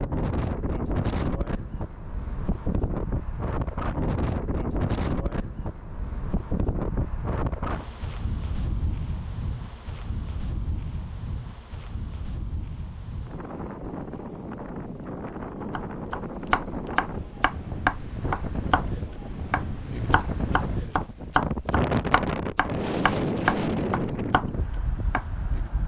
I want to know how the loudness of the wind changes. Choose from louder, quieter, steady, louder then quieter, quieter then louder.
quieter then louder.